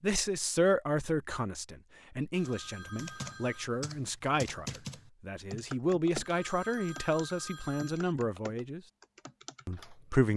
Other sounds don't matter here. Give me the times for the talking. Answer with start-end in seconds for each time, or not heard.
0.0-8.8, 9.7-10.3.